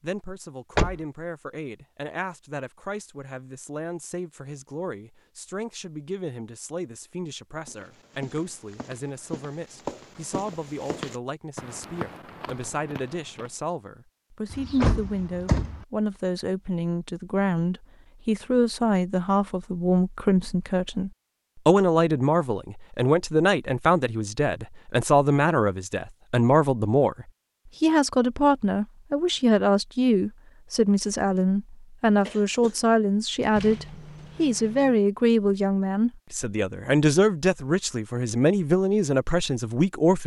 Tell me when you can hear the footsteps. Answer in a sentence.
The footsteps can be heard from 7.7 to 13.5 s.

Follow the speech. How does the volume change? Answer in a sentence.
The volume of the speech goes up.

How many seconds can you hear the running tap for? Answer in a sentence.
The running tap can't be heard in this clip.